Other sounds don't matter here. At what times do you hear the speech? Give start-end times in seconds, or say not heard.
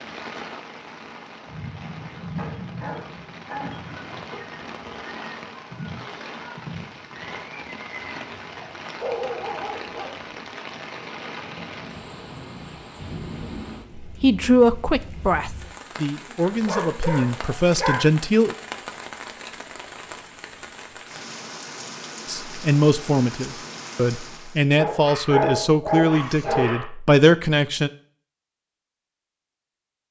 14.0-18.6, 22.2-27.9.